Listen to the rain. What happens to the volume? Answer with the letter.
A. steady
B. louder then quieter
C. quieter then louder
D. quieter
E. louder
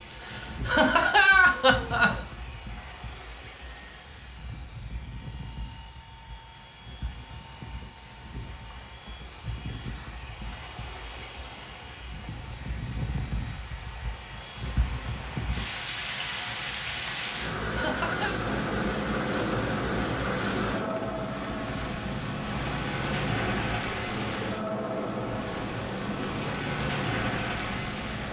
E.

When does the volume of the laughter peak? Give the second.
1 s.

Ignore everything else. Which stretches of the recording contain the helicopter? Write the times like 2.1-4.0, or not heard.
0.0-28.2.